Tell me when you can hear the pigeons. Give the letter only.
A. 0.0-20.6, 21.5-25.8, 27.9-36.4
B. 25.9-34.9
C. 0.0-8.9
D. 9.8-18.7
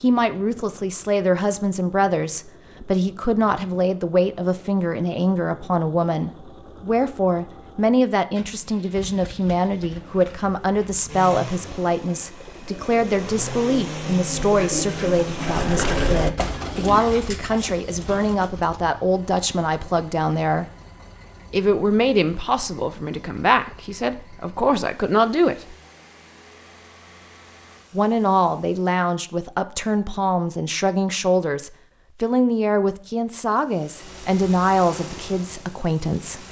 D.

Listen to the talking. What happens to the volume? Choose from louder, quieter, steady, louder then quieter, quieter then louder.
steady.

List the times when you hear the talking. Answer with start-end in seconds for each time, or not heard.
0.0-20.6, 21.5-25.8, 27.9-36.4.